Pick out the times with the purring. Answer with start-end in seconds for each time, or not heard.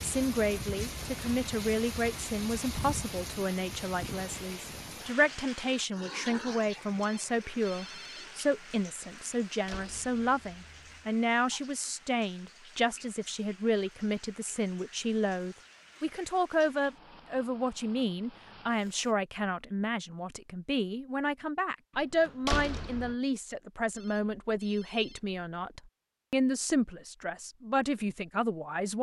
not heard.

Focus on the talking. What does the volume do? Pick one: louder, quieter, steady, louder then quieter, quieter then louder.
steady.